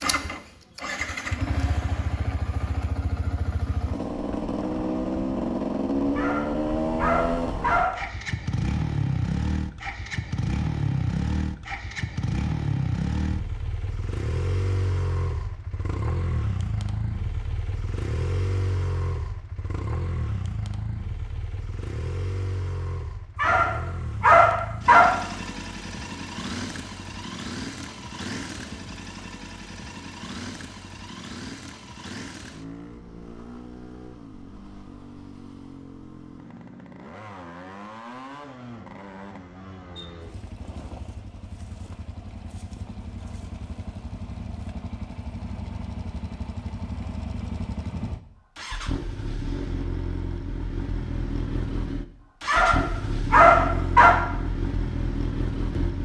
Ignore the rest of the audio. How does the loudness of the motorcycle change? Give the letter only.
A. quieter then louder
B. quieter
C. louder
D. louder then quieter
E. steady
A.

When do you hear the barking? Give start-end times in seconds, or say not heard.
6.2-8.1, 23.4-25.1, 52.5-54.1.